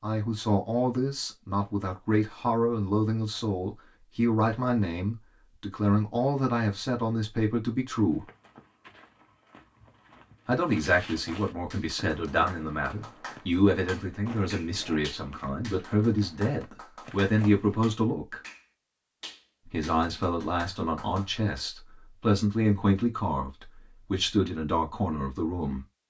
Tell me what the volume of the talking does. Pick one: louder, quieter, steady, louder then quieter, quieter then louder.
steady.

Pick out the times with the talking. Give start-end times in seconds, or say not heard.
0.0-8.2, 10.4-18.4, 19.6-25.9.